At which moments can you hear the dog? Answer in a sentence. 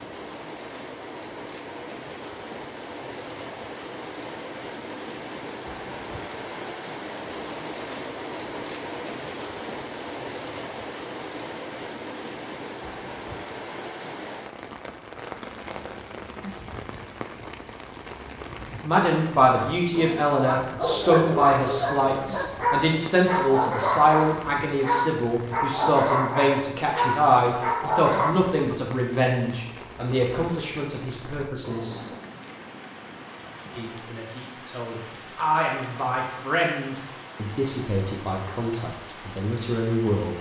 You can hear the dog from 20.4 to 28.4 s.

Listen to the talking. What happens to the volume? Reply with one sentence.
The loudness of the talking goes down.